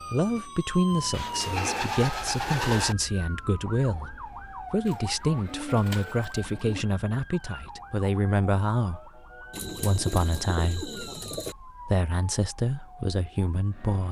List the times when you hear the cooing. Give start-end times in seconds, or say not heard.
1.1-3.0, 4.8-6.8, 9.5-11.6.